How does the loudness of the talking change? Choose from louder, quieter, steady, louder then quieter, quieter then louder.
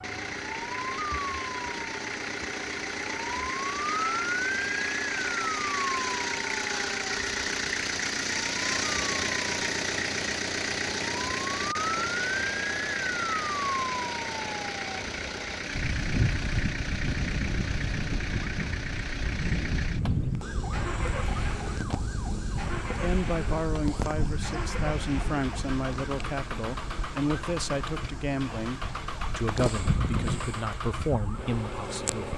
steady.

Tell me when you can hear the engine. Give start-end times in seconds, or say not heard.
0.0-32.3.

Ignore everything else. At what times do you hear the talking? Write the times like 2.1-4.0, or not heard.
23.0-32.3.